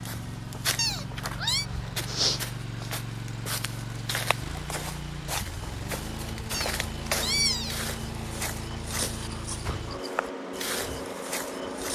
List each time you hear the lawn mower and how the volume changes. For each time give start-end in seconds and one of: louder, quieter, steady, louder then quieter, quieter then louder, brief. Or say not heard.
0.0-11.9 steady.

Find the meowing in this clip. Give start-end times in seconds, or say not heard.
0.8-1.6, 6.5-7.8.